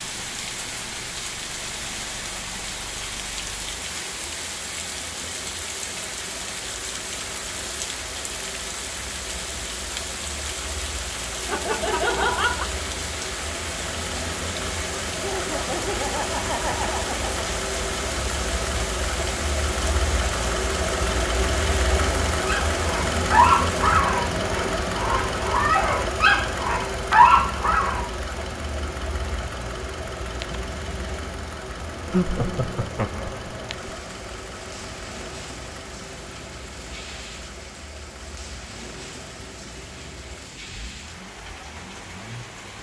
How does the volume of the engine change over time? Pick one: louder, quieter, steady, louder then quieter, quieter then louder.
louder then quieter.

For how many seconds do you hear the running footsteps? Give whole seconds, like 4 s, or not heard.
not heard.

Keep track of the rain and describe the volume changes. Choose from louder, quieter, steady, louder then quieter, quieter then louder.
quieter.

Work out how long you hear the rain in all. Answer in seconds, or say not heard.
43 s.